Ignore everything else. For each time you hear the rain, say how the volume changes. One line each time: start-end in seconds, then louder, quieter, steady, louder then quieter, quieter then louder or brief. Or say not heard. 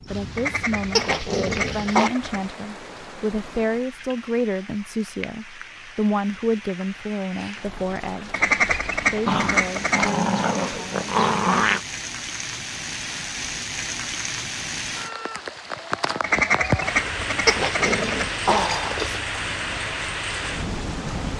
0.0-21.3 louder.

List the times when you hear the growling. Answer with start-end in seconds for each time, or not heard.
0.9-2.1, 9.2-11.8, 17.4-19.2.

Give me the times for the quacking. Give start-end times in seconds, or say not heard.
0.3-2.5, 8.3-10.1, 16.2-18.4.